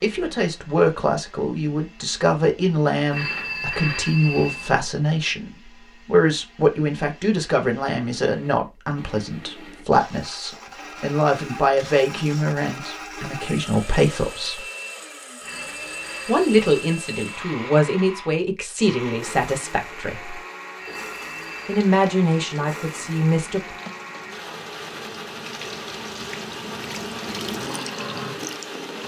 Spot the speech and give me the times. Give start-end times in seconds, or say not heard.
0.0-14.7, 16.2-20.4, 21.6-23.8.